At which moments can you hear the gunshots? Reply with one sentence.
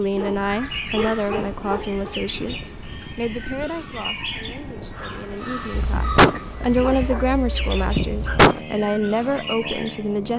You can hear the gunshots from 5.7 to 8.6 s.